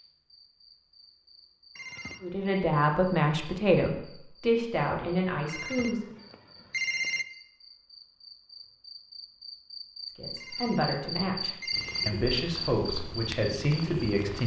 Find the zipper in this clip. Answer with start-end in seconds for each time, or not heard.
not heard.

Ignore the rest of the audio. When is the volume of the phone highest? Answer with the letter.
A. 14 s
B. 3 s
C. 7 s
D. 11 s
C.